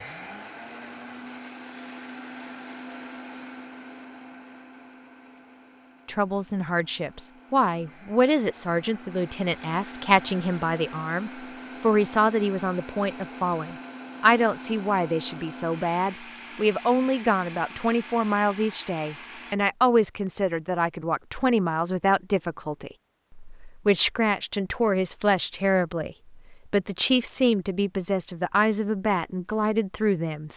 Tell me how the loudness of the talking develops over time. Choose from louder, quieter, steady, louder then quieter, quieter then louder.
steady.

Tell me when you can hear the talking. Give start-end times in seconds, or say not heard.
6.0-30.5.